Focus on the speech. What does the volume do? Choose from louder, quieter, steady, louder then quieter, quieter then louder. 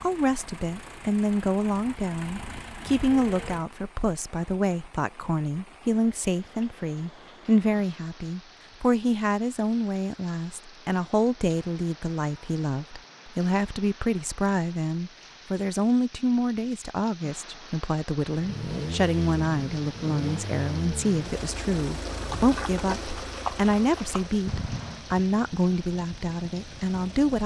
steady.